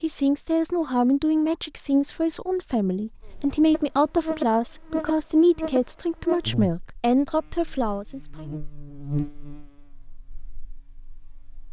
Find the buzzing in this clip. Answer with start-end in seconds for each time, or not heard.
3.2-11.6.